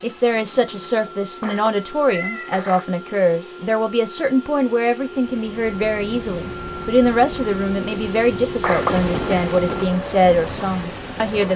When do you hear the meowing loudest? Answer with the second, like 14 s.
9 s.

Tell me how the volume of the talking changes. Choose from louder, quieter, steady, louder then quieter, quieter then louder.
steady.